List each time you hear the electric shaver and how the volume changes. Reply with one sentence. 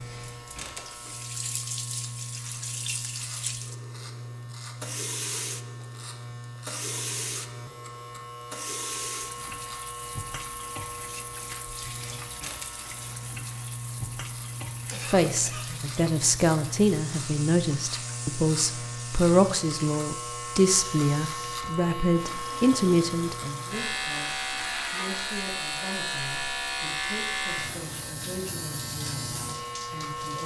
The electric shaver can be heard from 0.0 to 30.4 s, getting louder.